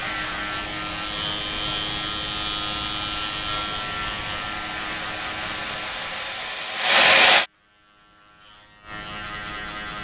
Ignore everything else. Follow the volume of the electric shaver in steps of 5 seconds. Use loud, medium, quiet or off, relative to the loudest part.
loud, medium.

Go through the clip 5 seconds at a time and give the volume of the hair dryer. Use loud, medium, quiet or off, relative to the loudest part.
quiet, loud.